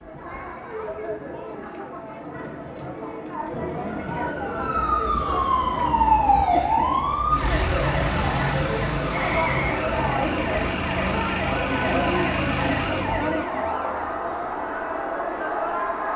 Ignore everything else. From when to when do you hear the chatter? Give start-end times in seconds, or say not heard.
0.0-16.1.